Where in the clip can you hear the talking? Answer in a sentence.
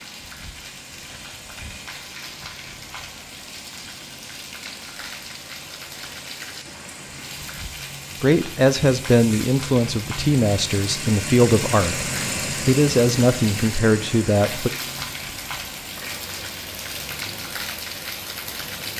The talking can be heard from 8.2 to 14.7 s.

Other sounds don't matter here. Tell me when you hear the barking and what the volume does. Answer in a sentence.
You can't hear the barking here.